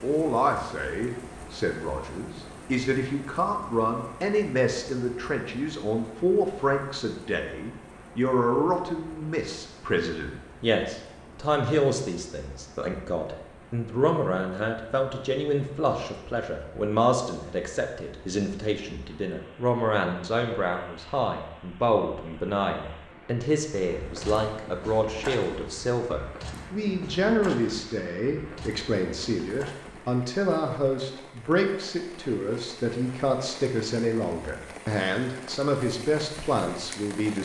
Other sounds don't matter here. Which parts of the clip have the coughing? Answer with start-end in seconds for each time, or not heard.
not heard.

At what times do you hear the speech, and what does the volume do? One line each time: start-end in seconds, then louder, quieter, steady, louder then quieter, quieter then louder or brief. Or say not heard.
0.0-37.4 steady.